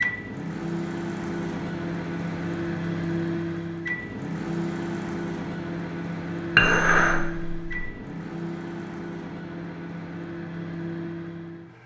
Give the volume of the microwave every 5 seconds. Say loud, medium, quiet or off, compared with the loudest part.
loud, loud, medium.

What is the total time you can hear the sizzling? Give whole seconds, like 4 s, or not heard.
not heard.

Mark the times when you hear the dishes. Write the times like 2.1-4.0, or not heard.
6.5-7.9.